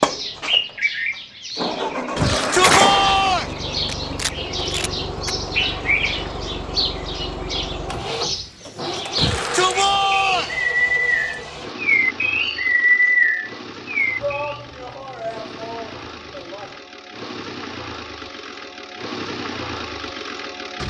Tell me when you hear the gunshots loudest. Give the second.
3 s.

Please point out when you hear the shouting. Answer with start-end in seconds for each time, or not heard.
2.1-3.5, 9.2-10.6, 14.2-16.8.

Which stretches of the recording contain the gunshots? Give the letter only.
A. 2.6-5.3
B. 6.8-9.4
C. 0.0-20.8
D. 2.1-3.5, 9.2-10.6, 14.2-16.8
A.